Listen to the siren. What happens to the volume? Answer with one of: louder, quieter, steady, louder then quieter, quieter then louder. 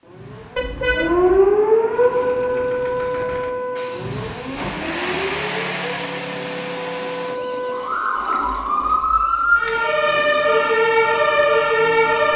quieter then louder.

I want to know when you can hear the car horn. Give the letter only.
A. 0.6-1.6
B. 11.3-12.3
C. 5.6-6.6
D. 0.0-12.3
A.